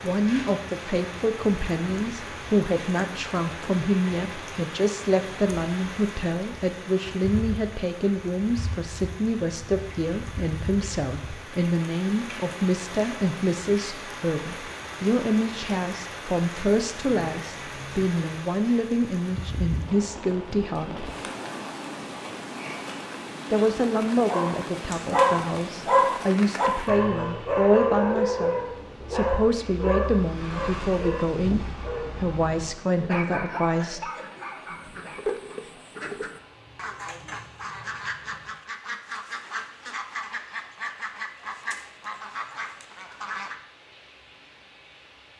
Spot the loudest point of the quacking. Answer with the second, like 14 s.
35 s.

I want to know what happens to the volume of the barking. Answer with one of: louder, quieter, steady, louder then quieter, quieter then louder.
quieter.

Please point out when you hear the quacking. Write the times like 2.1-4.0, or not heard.
34.2-43.6.